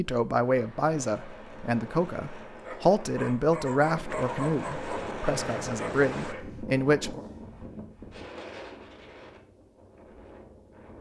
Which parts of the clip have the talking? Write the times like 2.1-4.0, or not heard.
0.0-7.2.